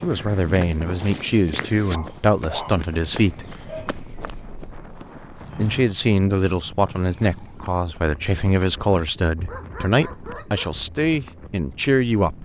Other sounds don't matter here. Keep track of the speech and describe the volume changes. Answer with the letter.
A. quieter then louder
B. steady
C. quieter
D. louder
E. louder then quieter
B.